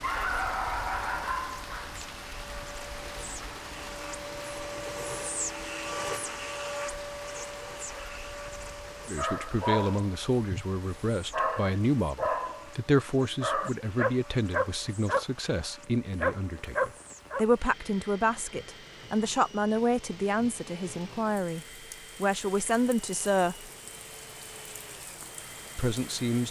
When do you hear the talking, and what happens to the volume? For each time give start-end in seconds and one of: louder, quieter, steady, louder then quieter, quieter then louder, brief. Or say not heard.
9.1-23.7 steady
25.8-26.4 brief.